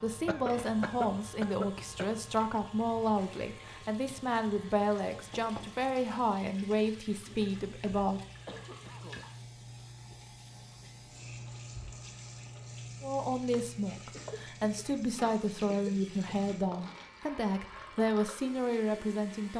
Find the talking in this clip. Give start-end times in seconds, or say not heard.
0.0-8.2, 13.0-19.5.